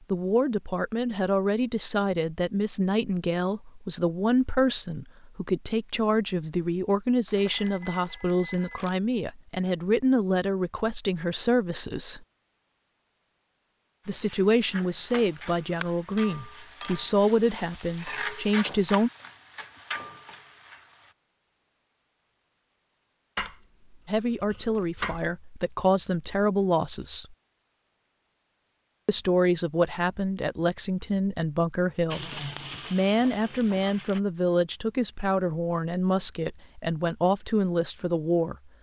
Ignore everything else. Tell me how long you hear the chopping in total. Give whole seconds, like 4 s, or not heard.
3 s.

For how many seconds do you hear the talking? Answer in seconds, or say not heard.
30 s.